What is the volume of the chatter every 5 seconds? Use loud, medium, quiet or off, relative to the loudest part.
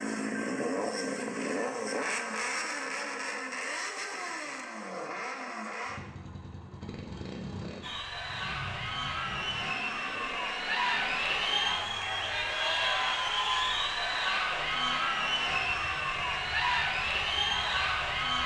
off, medium, loud, loud.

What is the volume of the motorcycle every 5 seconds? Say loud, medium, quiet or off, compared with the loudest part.
loud, medium, quiet, quiet.